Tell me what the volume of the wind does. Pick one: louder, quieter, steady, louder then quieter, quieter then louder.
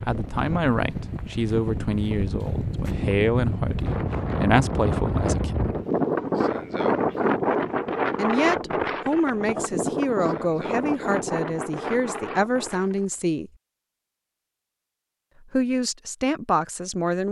louder then quieter.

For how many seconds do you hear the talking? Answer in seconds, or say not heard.
13 s.